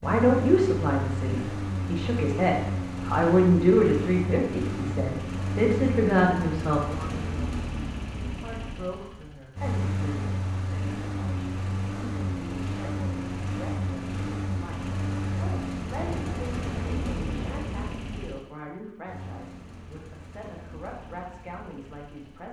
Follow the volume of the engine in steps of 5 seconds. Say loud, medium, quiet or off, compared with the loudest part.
loud, loud, loud, loud, quiet.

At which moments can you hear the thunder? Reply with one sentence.
You can hear the thunder from 15.9 to 18.0 s.